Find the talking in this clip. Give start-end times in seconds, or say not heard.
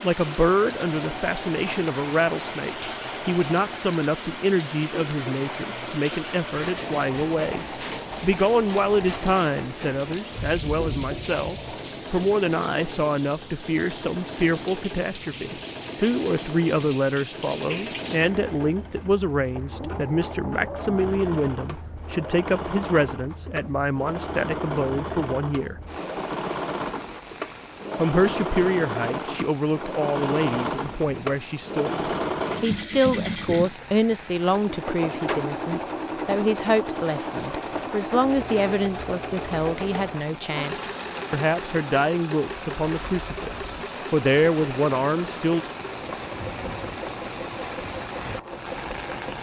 0.0-25.8, 27.9-45.6.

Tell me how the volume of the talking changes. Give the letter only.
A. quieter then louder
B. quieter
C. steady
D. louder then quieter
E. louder
C.